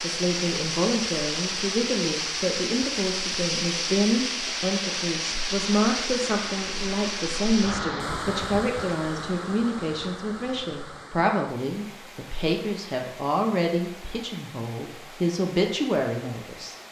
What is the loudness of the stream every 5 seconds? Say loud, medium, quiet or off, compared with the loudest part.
loud, loud, quiet, quiet.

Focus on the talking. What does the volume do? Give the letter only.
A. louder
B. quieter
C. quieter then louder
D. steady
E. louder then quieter
D.